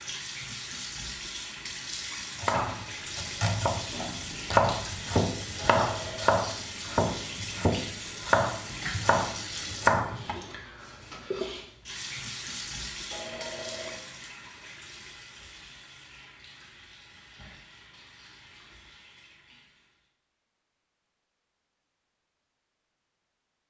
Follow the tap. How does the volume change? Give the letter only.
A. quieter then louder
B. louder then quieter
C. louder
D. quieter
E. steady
D.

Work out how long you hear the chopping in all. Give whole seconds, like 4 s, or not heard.
8 s.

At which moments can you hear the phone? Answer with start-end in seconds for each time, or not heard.
5.5-6.3, 13.1-14.1.